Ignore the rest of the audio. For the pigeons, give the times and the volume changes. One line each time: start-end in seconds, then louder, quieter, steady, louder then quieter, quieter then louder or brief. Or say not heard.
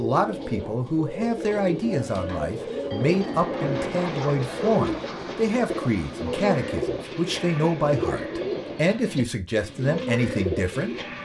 0.0-11.2 steady.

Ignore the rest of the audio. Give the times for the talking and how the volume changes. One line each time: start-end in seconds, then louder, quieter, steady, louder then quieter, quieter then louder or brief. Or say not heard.
0.0-10.9 steady.